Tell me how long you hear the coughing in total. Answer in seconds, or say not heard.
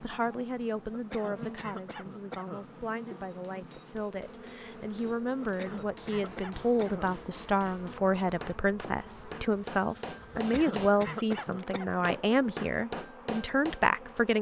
5 s.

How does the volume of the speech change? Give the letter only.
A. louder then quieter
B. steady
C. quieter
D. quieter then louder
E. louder
E.